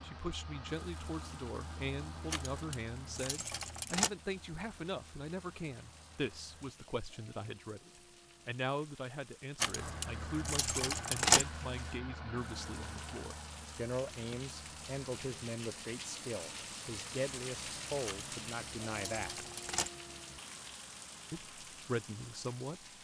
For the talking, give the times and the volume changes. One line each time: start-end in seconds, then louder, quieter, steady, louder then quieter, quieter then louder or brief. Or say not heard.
0.0-19.4 steady
21.3-22.9 brief.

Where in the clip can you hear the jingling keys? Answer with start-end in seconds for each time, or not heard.
2.3-4.1, 9.6-11.4, 18.1-19.9.